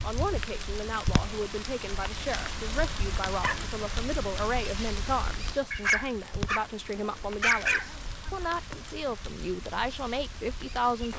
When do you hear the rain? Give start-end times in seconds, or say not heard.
0.0-11.1.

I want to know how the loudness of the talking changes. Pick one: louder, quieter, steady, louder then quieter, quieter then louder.
steady.